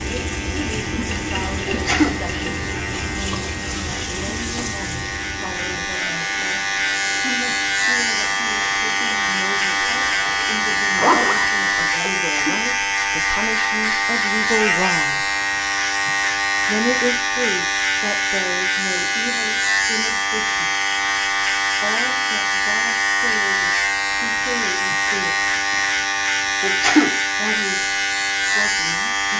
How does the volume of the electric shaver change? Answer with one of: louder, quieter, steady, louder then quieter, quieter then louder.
louder.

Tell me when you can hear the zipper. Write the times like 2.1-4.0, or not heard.
10.7-12.2.